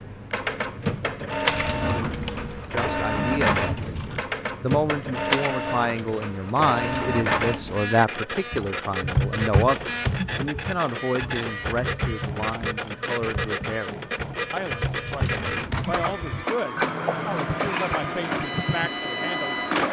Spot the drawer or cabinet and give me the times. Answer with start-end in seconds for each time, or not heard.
1.4-4.2, 6.8-7.8, 15.1-15.8.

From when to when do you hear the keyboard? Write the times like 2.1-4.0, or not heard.
8.5-18.9.